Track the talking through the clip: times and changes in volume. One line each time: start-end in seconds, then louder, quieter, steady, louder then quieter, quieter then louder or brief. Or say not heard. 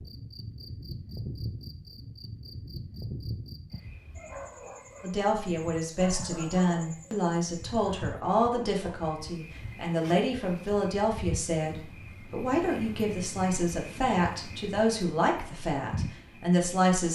5.0-17.1 steady.